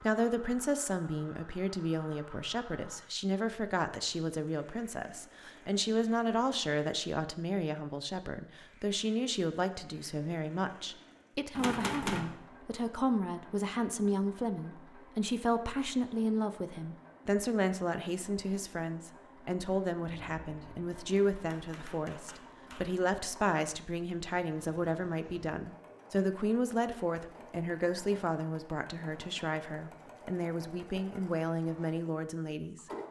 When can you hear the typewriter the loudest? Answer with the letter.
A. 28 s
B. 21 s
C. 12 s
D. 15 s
C.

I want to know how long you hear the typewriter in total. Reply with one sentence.
The typewriter can be heard for 4 seconds in total.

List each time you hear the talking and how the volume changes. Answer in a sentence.
You can hear the talking from 0.0 to 32.9 s, at a steady volume.